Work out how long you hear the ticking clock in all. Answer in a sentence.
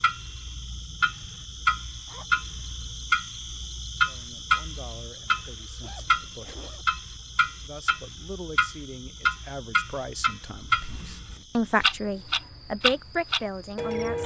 You can hear the ticking clock for 14 seconds altogether.